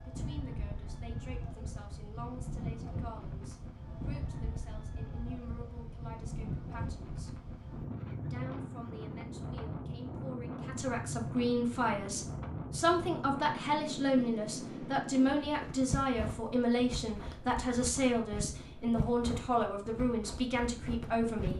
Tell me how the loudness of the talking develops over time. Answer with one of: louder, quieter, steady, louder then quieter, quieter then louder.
louder.